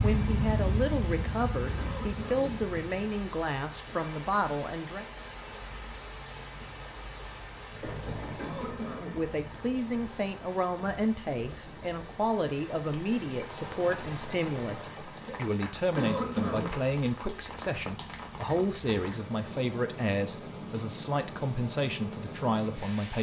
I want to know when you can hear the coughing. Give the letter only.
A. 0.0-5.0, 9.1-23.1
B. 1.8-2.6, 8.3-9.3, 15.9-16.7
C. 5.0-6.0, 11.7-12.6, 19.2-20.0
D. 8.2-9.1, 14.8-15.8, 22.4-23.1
B.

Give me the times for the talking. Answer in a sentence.
The talking can be heard from 0.0 to 5.0 s and from 9.1 to 23.1 s.